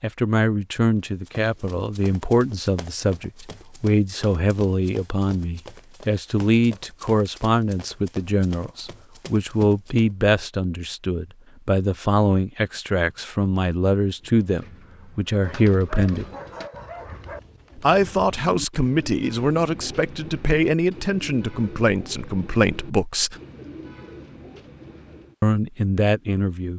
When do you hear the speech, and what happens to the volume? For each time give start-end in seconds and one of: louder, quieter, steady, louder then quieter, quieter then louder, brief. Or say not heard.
0.0-16.2 steady
17.8-23.4 steady
25.4-26.7 brief.